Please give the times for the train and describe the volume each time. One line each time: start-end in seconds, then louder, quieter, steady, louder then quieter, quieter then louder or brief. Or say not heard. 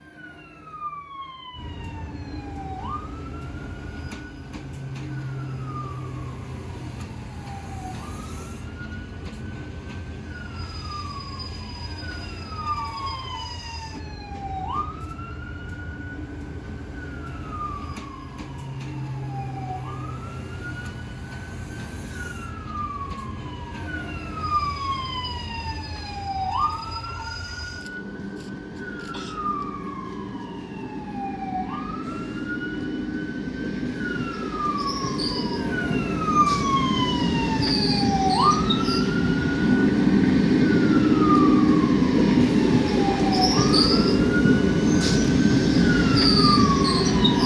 1.5-47.4 louder.